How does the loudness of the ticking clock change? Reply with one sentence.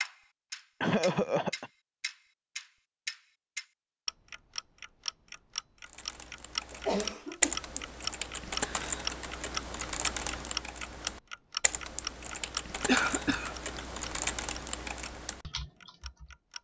The loudness of the ticking clock goes up, then down.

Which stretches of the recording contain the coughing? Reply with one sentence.
The coughing can be heard from 0.8 to 1.7 s, from 6.7 to 7.8 s and from 12.8 to 13.6 s.